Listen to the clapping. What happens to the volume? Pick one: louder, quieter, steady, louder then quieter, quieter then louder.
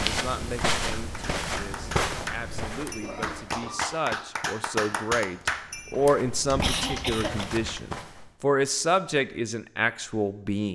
louder then quieter.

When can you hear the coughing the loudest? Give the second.
7 s.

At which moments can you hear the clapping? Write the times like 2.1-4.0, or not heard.
0.4-7.8.